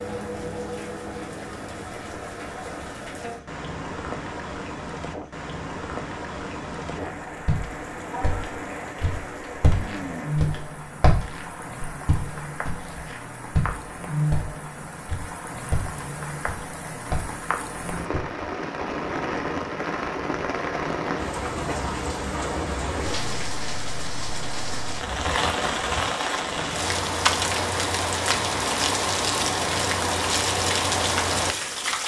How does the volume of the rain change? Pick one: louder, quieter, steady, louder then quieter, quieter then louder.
louder.